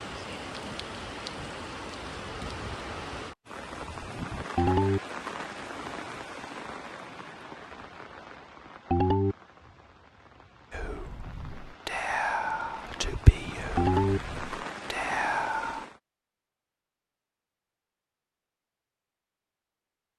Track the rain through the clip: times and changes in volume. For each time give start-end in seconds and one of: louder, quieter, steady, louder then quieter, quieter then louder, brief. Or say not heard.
0.0-16.0 quieter then louder.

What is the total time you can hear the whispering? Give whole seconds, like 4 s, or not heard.
5 s.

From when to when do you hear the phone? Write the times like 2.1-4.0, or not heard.
4.5-5.0, 8.9-9.3, 13.8-14.2.